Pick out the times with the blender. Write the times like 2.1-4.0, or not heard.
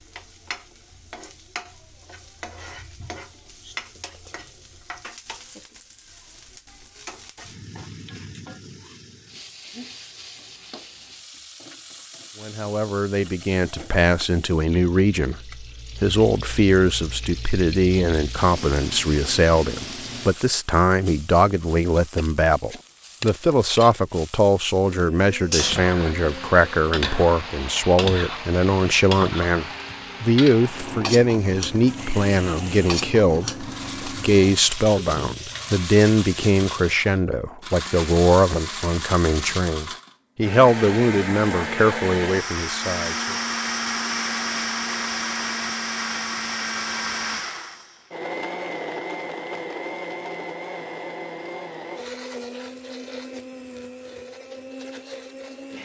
24.9-55.8.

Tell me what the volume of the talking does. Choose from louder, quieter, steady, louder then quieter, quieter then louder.
steady.